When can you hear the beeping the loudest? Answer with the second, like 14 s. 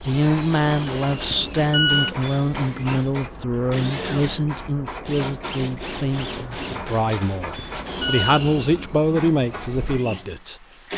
2 s.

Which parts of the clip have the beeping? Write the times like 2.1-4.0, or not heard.
1.3-2.1, 7.5-8.4.